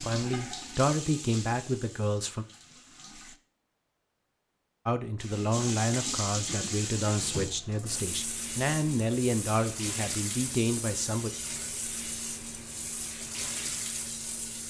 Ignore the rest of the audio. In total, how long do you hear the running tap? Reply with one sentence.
You can hear the running tap for 13 seconds altogether.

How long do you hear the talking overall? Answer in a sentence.
You can hear the talking for 9 seconds altogether.